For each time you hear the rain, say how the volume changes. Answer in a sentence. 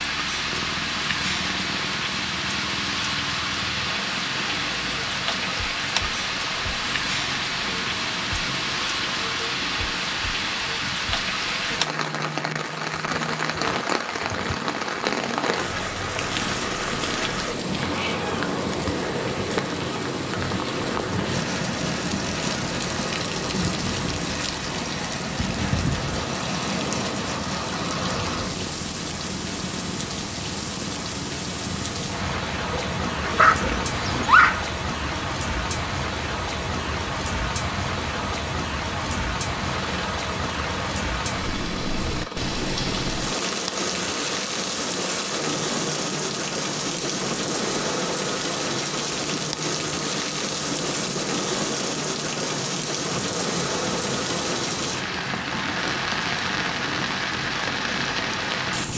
You can hear the rain from 0.0 to 58.9 s, at a steady volume.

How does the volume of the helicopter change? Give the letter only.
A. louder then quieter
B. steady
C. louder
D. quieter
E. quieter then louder
B.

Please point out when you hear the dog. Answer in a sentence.
You can hear the dog from 33.2 to 34.6 s.